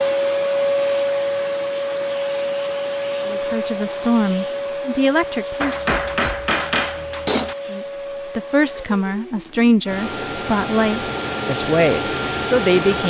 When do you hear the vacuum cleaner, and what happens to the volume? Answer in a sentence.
The vacuum cleaner can be heard from 0.0 to 13.0 s, getting quieter then louder.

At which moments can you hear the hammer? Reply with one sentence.
You can hear the hammer from 5.6 to 7.5 s.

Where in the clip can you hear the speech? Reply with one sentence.
The speech can be heard from 3.2 to 5.8 s and from 7.7 to 13.0 s.